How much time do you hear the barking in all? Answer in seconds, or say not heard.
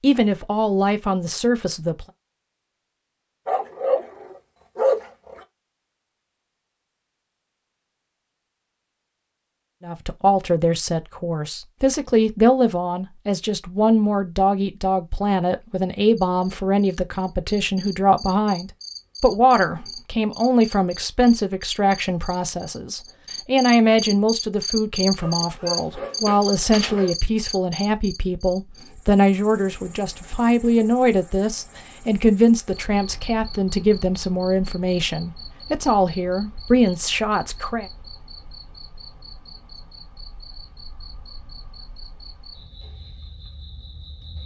4 s.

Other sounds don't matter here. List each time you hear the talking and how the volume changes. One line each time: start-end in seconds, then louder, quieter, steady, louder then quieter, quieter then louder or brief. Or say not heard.
0.0-2.0 brief
9.8-37.9 steady.